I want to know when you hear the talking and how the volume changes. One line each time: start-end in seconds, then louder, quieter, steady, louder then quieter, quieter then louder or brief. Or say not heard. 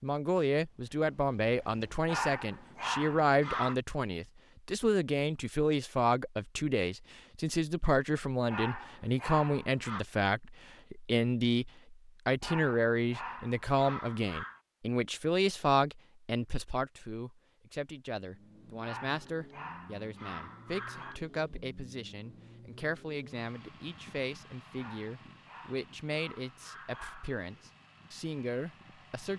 0.0-29.3 quieter.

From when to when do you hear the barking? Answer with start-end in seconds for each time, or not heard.
2.0-3.8, 8.4-10.1, 12.4-14.6, 18.8-21.2, 24.8-27.7.